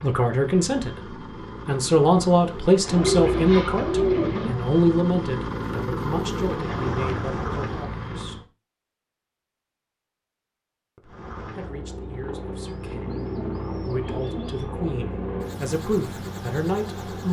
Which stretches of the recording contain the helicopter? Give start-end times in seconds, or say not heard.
0.0-8.4, 11.0-17.2.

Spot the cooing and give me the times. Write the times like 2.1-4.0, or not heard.
2.9-4.5, 12.6-14.7.